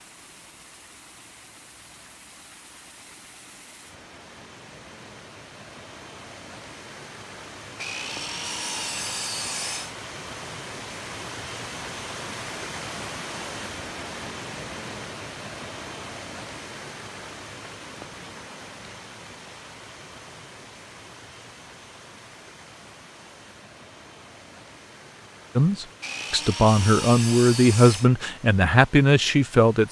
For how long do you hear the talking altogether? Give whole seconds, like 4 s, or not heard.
4 s.